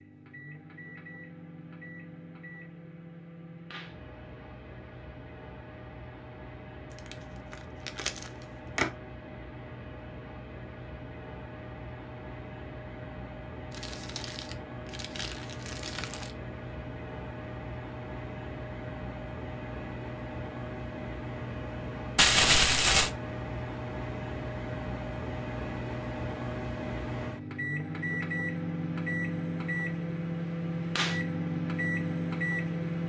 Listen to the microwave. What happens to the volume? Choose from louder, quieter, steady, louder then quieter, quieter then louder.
louder.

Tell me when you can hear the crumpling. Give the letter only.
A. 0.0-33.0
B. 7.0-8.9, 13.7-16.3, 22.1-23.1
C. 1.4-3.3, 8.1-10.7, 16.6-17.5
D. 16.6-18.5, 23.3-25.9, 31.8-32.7
B.